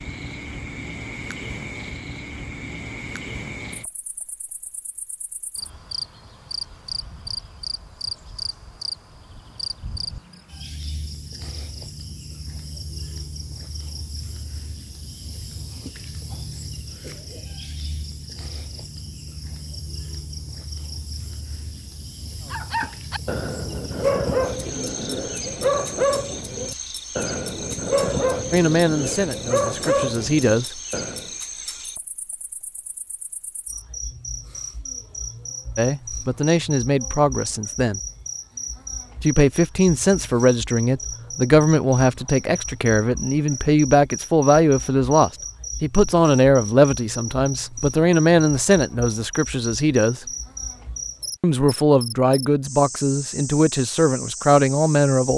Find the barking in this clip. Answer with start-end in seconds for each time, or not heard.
22.5-31.3.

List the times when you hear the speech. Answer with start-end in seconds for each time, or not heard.
28.5-30.7, 35.8-38.0, 39.2-50.2, 51.4-55.3.